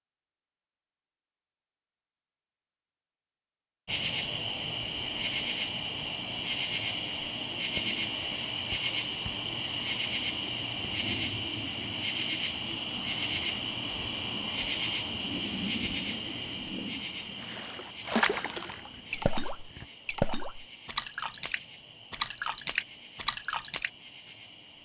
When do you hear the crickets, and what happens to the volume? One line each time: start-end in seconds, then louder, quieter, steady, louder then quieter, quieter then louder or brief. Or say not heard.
3.9-24.8 quieter.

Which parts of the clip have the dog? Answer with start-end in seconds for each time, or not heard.
not heard.